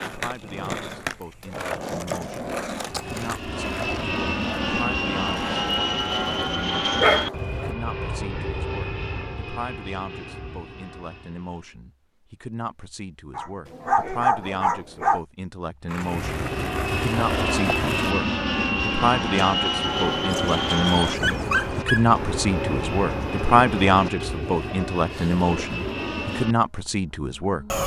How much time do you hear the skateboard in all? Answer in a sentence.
You can hear the skateboard for 10 seconds altogether.